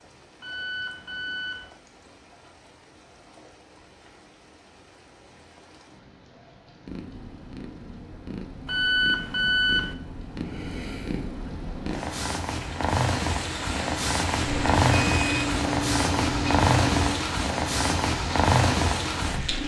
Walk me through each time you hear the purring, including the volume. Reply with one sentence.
The purring can be heard from 6.8 to 19.6 s, getting louder.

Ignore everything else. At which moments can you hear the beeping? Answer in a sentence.
You can hear the beeping from 0.4 to 1.7 s, from 8.7 to 9.9 s and from 14.4 to 17.2 s.